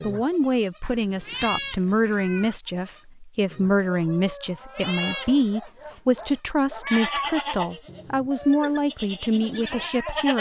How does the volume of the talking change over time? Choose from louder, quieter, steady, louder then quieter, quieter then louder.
steady.